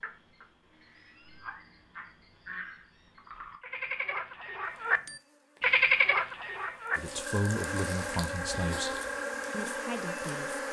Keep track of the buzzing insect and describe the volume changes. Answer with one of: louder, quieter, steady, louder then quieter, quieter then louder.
louder.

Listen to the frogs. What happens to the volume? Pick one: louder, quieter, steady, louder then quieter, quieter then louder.
louder then quieter.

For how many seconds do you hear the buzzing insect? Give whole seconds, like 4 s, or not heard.
6 s.